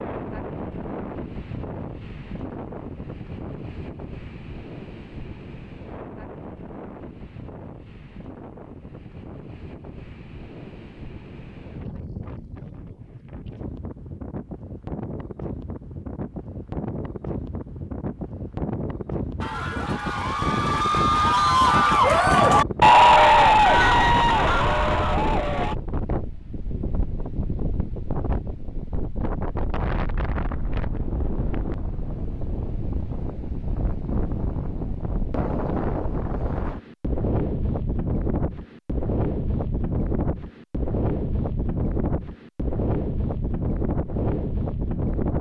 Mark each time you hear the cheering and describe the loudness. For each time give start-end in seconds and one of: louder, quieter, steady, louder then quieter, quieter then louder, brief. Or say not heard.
19.4-25.8 louder then quieter.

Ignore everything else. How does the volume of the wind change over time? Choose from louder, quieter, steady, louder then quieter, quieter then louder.
louder.